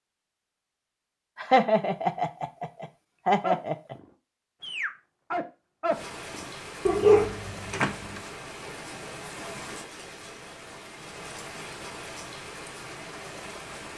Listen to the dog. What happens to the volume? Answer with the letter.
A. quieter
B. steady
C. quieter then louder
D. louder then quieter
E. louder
E.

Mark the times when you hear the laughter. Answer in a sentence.
The laughter can be heard from 1.4 to 4.0 s.